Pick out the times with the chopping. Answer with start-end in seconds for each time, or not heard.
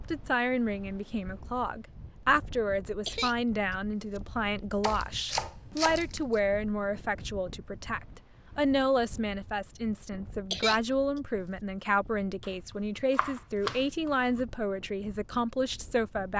4.8-6.4, 13.2-13.8.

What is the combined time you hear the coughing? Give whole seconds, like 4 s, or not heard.
2 s.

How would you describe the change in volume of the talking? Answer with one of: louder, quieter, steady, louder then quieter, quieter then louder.
steady.